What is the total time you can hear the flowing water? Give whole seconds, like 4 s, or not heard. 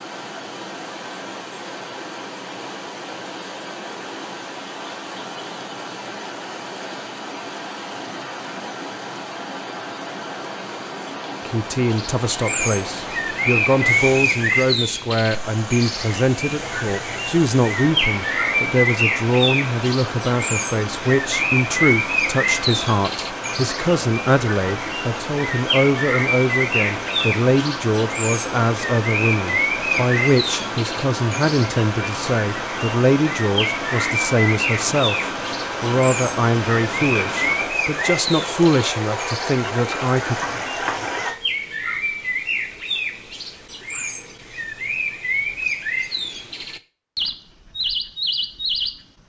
41 s.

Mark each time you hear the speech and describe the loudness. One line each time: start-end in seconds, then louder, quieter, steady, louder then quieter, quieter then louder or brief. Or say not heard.
11.4-40.4 steady.